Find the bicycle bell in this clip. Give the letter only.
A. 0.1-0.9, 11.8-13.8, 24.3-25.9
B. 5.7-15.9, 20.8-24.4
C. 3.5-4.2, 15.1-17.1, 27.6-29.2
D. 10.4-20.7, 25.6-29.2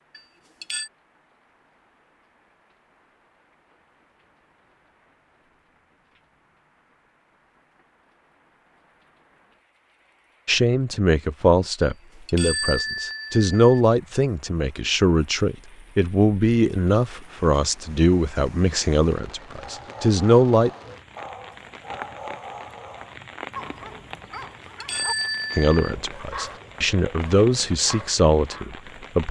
A.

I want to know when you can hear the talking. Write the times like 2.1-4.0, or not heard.
10.4-20.7, 25.6-29.2.